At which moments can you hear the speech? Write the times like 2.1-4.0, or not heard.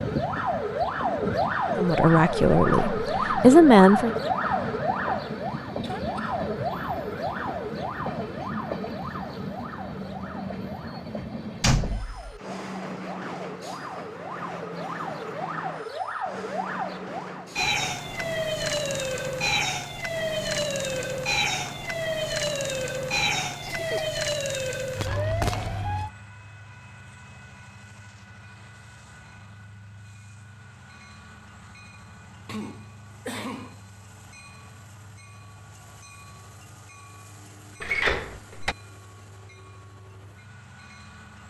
1.8-4.2.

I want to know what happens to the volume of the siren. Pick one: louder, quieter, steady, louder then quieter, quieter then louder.
quieter then louder.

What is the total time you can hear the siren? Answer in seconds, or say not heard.
26 s.